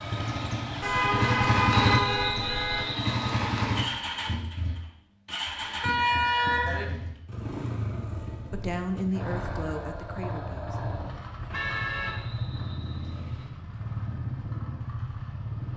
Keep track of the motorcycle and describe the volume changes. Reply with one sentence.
The loudness of the motorcycle goes down.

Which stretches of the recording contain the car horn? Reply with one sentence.
You can hear the car horn from 0.8 to 2.9 s, from 5.8 to 6.8 s and from 11.5 to 12.2 s.